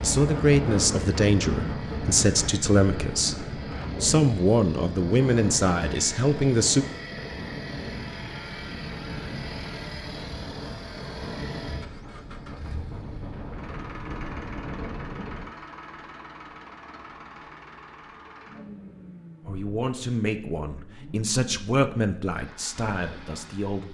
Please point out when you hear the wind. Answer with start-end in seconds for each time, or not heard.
0.0-15.5.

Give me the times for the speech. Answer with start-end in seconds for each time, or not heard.
0.0-6.8, 19.4-23.8.